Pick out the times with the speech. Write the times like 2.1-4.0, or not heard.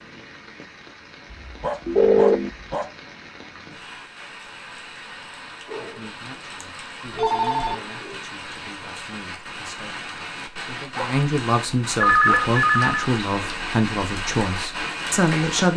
5.7-15.7.